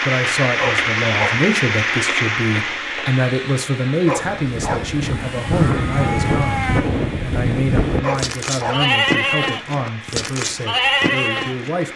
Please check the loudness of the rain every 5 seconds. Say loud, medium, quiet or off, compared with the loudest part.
loud, quiet, quiet.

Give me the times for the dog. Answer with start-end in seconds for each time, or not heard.
0.6-1.4, 4.0-4.9, 8.0-8.8.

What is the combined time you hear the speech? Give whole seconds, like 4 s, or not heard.
12 s.